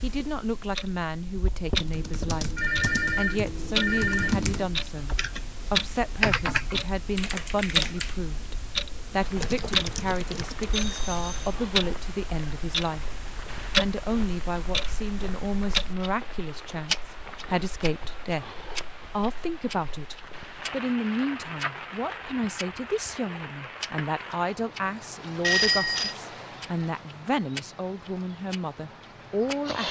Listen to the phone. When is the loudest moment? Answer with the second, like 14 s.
26 s.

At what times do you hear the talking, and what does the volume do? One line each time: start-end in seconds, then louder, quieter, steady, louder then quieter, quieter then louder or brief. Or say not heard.
0.0-2.5 brief
3.1-5.1 brief
5.7-18.4 steady
19.1-29.8 steady.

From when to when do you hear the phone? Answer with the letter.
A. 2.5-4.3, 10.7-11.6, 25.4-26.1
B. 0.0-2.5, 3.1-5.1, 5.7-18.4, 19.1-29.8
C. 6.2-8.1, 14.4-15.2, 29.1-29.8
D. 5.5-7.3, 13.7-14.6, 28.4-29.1
A.